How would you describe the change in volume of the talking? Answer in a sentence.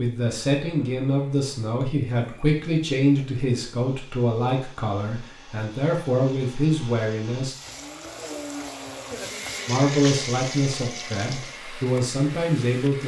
The volume of the talking stays about the same.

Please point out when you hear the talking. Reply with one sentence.
The talking can be heard from 0.0 to 7.5 s and from 9.7 to 13.0 s.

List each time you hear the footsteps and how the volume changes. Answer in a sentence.
The footsteps can't be heard in this clip.